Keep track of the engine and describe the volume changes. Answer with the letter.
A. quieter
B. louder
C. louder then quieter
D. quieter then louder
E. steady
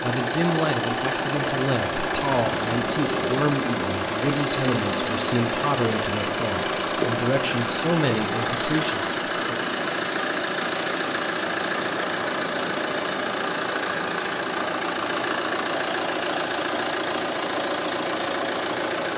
E.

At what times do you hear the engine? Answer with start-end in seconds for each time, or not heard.
0.0-19.1.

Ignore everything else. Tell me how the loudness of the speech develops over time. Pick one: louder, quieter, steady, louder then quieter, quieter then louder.
steady.